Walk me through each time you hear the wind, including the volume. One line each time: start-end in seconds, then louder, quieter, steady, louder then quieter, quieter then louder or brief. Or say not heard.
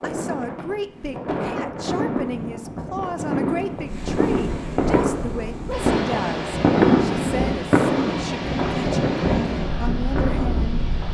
0.0-11.1 louder.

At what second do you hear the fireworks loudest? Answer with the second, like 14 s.
7 s.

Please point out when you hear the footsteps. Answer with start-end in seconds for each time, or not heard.
not heard.